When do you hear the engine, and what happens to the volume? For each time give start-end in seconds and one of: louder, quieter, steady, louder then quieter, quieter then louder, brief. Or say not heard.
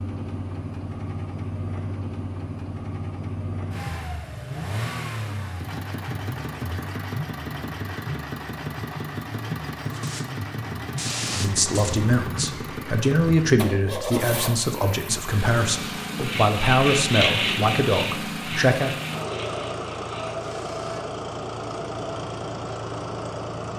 0.0-23.7 steady.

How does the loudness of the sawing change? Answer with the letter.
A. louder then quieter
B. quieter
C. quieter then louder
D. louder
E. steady
B.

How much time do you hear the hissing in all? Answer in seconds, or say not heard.
2 s.